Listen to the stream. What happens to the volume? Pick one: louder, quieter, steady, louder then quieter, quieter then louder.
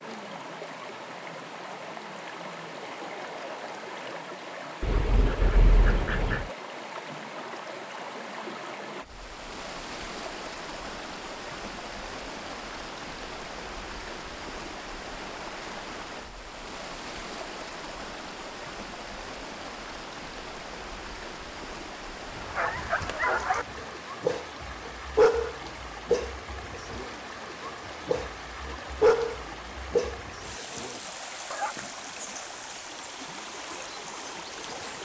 steady.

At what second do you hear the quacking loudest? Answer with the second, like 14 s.
6 s.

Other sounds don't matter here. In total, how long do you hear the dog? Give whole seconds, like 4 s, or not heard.
9 s.